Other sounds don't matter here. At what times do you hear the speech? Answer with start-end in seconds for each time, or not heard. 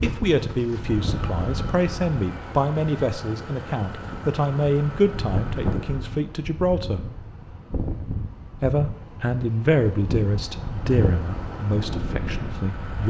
0.0-7.0, 8.6-13.0.